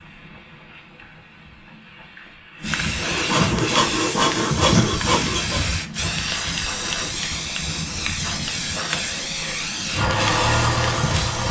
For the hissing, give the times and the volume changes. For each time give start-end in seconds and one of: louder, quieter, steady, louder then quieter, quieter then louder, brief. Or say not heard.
0.0-11.4 louder.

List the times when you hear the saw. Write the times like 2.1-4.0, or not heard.
3.0-5.7.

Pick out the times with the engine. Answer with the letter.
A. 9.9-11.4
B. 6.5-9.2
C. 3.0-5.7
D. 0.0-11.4
A.